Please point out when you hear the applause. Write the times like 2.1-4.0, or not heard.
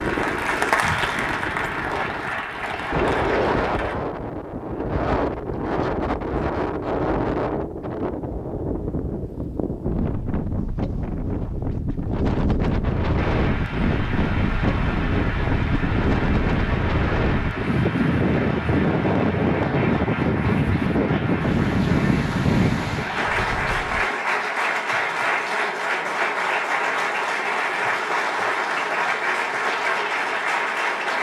0.0-4.0, 13.2-31.1.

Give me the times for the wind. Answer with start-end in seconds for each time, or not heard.
0.0-24.1.